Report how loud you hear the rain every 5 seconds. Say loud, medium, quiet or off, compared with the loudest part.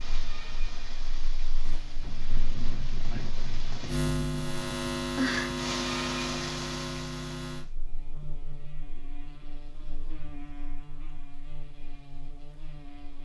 medium, loud, off.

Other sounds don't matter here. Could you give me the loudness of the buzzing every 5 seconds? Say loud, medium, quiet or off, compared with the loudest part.
loud, loud, quiet.